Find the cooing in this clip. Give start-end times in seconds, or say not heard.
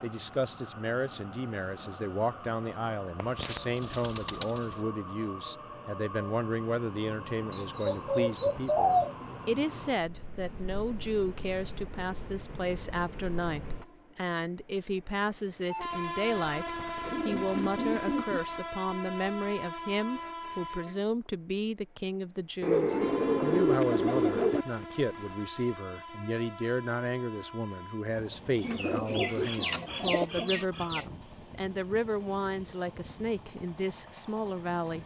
3.2-4.8, 7.5-9.2, 17.1-18.4, 22.6-24.6, 28.6-31.1.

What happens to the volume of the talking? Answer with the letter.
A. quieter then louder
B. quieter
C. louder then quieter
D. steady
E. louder
D.